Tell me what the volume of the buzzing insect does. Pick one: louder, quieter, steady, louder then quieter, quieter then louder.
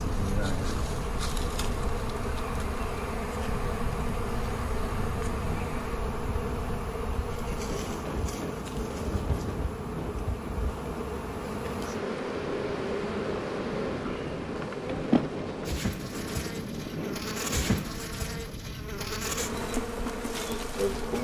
steady.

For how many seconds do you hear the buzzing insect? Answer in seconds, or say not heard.
21 s.